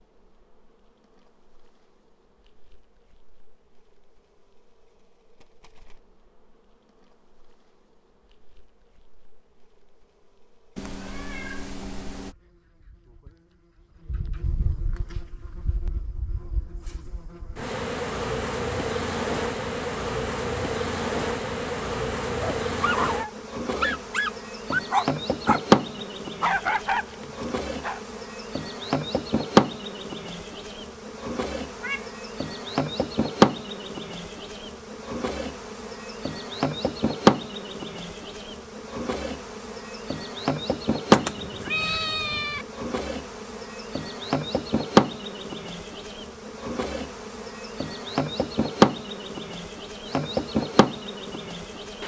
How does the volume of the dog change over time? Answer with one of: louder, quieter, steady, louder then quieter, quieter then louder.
louder then quieter.